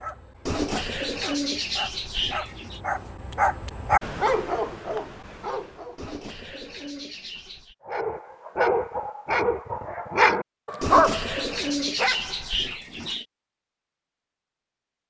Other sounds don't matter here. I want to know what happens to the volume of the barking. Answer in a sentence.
The volume of the barking goes up.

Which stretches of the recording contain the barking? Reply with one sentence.
The barking can be heard from 0.0 to 6.0 s and from 7.8 to 12.8 s.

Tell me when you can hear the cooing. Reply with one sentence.
You can hear the cooing from 0.5 to 2.8 s, from 6.0 to 7.8 s and from 10.8 to 13.2 s.